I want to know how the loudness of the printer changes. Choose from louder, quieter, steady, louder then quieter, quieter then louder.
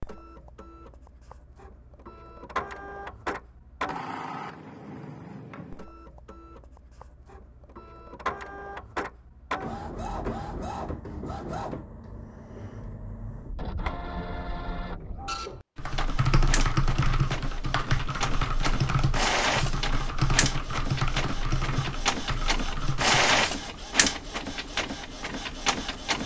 louder.